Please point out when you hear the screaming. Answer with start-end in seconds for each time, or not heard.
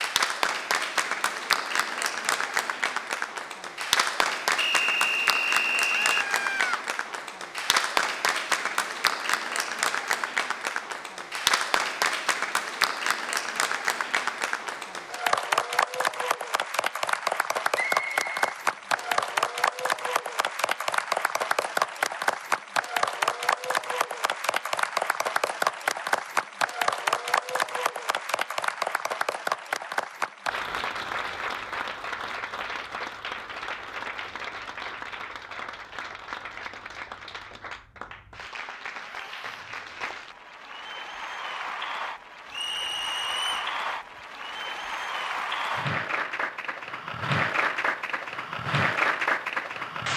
5.8-6.8, 39.0-39.6.